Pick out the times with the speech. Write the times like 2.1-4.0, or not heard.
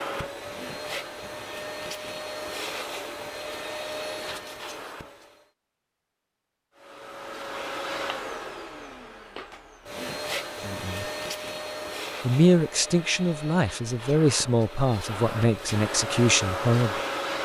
10.7-11.1, 12.2-17.0.